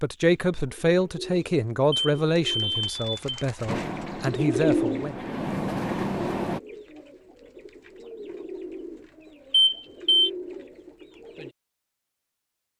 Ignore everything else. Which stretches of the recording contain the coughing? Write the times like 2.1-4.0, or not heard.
not heard.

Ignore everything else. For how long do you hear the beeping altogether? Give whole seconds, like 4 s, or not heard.
2 s.